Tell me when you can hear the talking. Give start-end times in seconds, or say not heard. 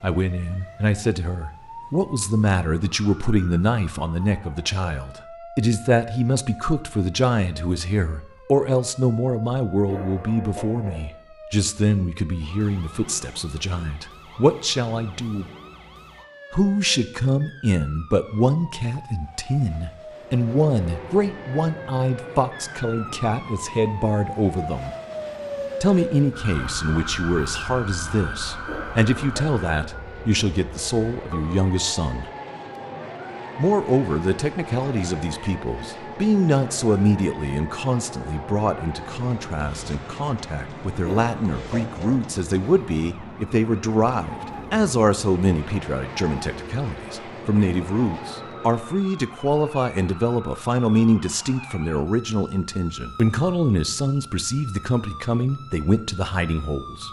0.0-15.4, 16.5-24.9, 25.8-32.3, 33.5-57.0.